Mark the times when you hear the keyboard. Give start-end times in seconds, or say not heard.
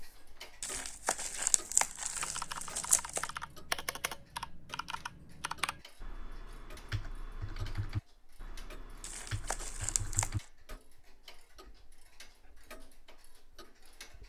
2.1-10.8.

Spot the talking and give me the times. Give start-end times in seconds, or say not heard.
not heard.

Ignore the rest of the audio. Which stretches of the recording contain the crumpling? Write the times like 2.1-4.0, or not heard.
0.6-3.3, 9.0-10.4.